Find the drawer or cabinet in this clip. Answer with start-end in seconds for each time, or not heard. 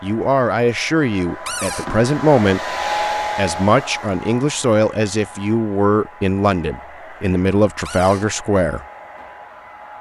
1.4-1.9, 7.8-8.2.